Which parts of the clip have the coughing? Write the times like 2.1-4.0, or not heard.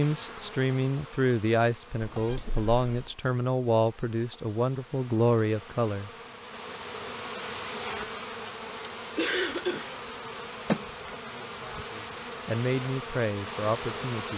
2.0-3.1, 9.2-9.9.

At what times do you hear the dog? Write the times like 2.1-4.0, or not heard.
not heard.